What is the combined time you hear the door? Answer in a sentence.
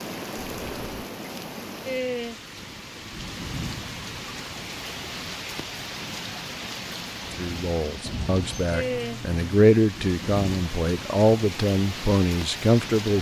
You can hear the door for 2 seconds altogether.